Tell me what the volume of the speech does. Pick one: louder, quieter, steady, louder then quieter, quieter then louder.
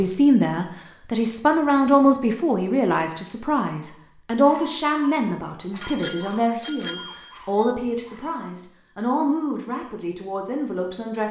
quieter.